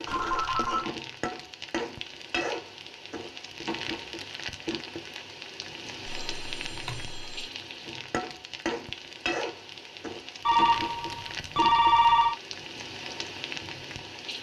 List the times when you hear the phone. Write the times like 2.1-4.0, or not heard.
0.1-0.9, 6.0-7.5, 10.4-12.3.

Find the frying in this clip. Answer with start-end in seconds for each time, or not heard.
0.0-14.3.